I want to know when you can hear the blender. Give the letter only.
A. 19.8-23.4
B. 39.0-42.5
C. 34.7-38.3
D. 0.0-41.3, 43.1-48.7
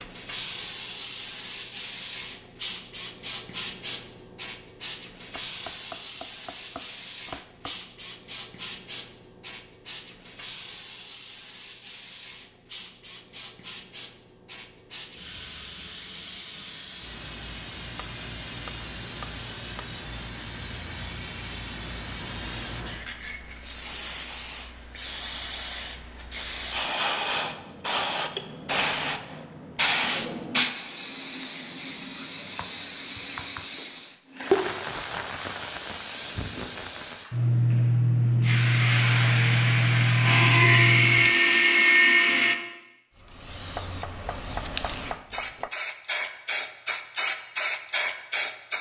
B.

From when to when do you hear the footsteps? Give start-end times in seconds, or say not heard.
not heard.